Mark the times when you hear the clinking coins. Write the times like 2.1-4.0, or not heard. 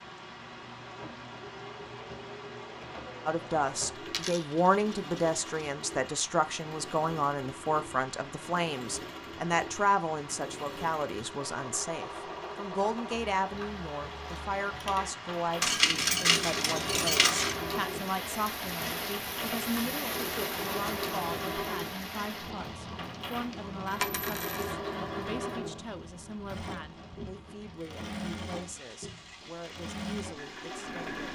4.0-5.7, 15.6-17.6, 23.9-24.8.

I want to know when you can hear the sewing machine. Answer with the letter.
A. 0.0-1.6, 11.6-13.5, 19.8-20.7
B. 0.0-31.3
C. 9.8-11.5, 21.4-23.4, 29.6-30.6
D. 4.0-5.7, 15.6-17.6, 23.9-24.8
B.